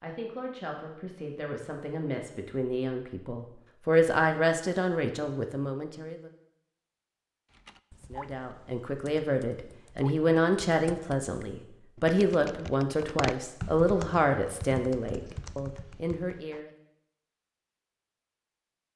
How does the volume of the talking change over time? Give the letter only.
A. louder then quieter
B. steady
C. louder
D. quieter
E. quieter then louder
C.